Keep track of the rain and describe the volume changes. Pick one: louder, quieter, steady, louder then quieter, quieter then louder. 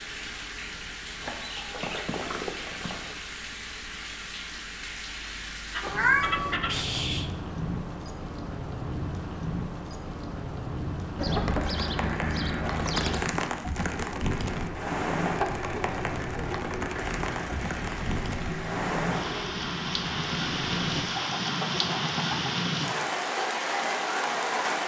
louder.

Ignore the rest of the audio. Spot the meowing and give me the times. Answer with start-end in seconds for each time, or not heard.
5.8-6.6.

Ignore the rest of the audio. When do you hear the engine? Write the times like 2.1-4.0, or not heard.
13.8-20.9.